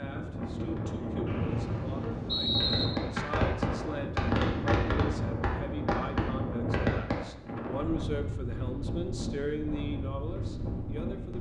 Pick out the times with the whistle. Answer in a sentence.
The whistle can be heard from 1.2 to 2.9 s.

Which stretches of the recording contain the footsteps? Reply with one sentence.
You can't hear the footsteps here.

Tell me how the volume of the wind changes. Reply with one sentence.
The loudness of the wind stays about the same.